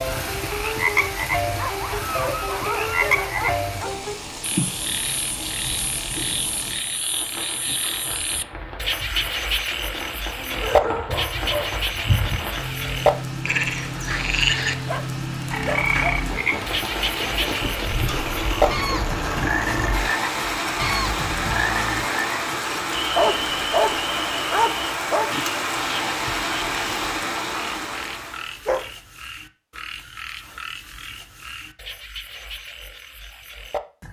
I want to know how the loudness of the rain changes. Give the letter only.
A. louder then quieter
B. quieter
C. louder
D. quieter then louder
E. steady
C.